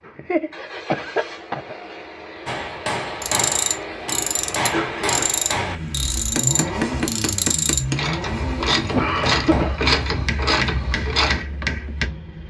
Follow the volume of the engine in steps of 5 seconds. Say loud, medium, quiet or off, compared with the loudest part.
medium, loud, medium.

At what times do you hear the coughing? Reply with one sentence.
You can hear the coughing from 0.1 to 1.8 s, from 4.7 to 5.3 s and from 8.9 to 9.8 s.